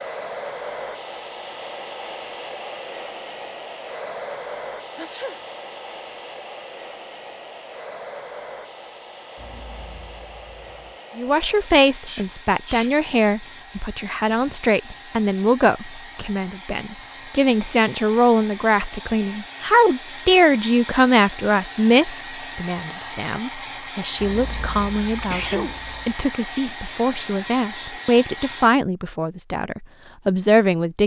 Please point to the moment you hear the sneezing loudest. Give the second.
25 s.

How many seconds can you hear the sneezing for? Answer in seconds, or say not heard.
3 s.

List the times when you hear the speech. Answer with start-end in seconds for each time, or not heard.
11.2-31.0.